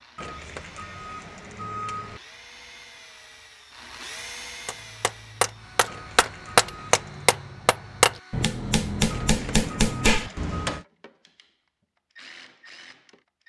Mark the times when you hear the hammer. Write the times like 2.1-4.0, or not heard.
4.7-10.8.